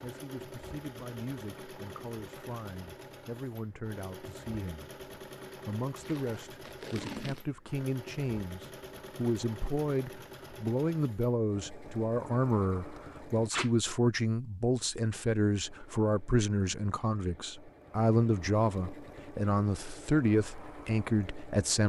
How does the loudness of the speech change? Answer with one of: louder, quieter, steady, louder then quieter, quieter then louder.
louder.